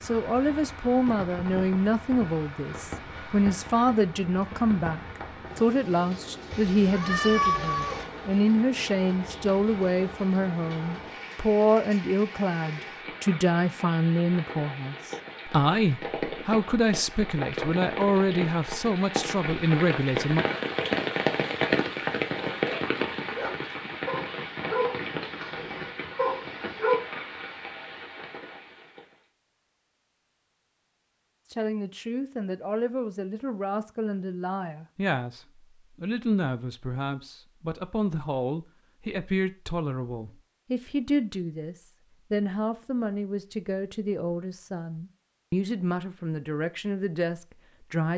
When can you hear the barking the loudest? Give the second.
27 s.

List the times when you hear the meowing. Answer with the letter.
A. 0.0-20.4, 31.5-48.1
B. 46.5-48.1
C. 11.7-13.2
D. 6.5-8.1
D.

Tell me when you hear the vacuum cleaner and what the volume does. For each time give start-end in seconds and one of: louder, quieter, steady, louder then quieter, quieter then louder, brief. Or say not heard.
not heard.